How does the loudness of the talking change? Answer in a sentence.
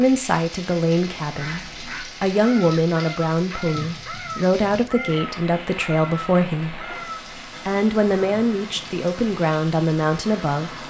The volume of the talking stays about the same.